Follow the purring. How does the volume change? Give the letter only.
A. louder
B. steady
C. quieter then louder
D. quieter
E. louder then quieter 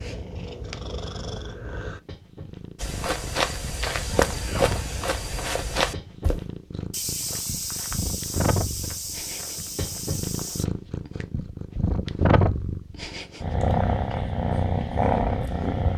A.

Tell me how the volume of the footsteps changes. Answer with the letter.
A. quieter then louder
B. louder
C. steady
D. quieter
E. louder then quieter
D.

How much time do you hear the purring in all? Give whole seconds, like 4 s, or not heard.
16 s.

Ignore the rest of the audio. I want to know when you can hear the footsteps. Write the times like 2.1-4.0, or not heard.
2.8-10.7.